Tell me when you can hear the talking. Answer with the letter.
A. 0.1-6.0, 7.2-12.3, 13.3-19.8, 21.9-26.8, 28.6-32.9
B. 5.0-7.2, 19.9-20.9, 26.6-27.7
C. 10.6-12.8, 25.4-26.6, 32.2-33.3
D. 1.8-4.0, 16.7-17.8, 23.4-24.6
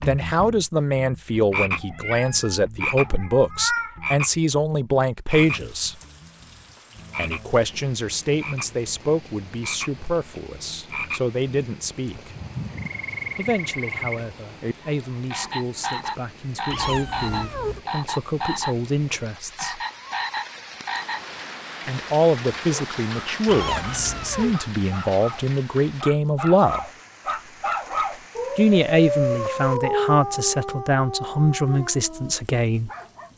A.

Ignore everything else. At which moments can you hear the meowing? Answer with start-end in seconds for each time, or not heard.
1.8-4.0, 16.7-17.8, 23.4-24.6.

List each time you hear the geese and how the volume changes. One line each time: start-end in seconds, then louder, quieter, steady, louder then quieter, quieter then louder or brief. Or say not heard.
not heard.